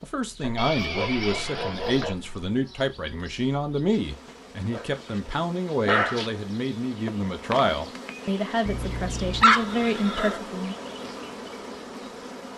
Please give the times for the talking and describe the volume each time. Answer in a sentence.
The talking can be heard from 0.0 to 10.8 s, at a steady volume.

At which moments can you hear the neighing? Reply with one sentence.
The neighing can be heard from 0.6 to 2.1 s and from 9.4 to 10.4 s.